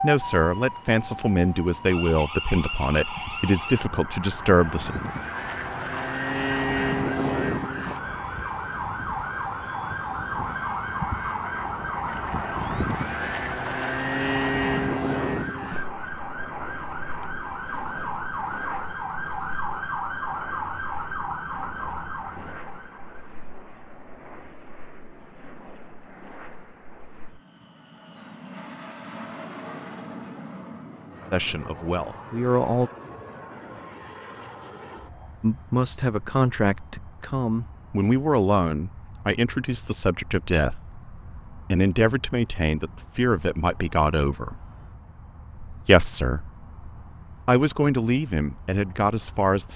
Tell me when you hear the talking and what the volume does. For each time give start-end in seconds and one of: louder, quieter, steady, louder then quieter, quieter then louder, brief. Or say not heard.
0.0-5.0 steady
31.3-32.9 brief
35.4-44.6 steady
45.6-46.5 brief
47.5-49.7 brief.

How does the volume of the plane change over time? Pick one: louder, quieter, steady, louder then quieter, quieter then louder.
quieter.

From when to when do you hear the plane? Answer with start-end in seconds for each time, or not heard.
0.0-49.7.